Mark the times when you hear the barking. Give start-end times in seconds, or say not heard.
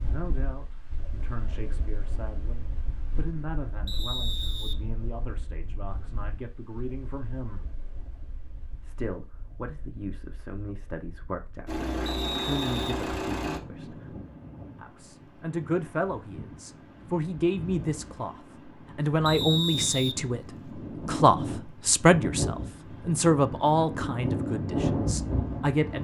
not heard.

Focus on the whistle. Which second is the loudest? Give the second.
20 s.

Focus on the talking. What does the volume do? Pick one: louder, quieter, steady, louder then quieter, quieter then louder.
louder.